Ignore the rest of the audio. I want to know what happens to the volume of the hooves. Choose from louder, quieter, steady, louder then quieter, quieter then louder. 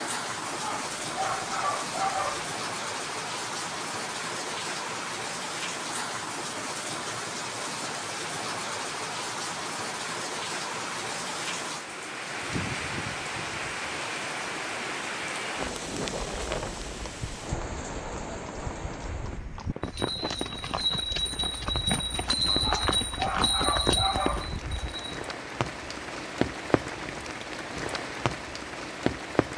louder.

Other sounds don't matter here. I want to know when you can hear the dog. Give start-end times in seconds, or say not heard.
0.5-2.5, 22.4-24.5.